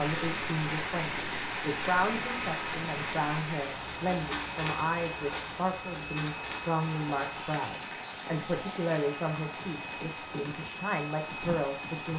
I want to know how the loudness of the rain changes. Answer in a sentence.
The volume of the rain goes down.